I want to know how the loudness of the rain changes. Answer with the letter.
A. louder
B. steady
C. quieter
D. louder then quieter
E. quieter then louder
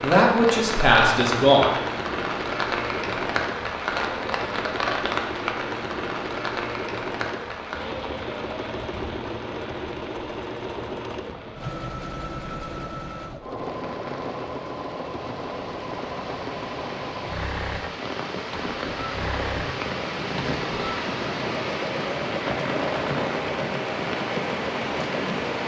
E.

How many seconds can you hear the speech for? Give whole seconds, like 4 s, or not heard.
2 s.